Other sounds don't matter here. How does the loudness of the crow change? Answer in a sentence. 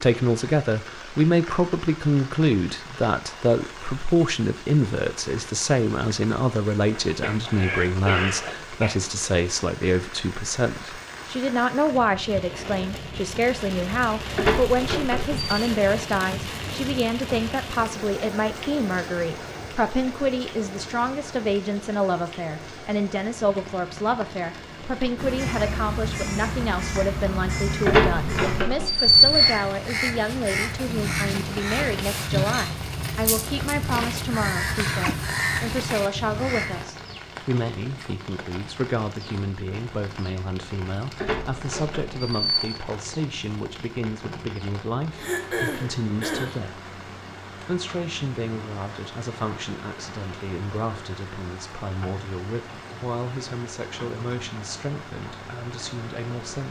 The loudness of the crow stays about the same.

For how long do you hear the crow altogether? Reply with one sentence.
You can hear the crow for 12 seconds altogether.